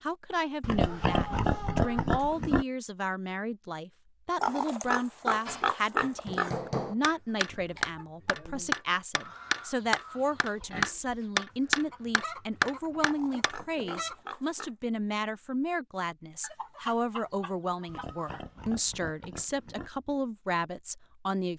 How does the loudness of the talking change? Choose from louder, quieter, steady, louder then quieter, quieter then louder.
steady.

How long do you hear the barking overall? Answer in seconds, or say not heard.
not heard.